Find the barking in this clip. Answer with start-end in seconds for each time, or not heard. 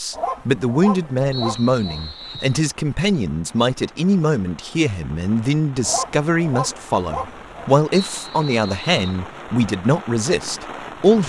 0.1-2.1, 5.8-7.7.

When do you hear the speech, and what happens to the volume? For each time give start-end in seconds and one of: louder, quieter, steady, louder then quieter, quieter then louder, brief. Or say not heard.
0.0-11.2 steady.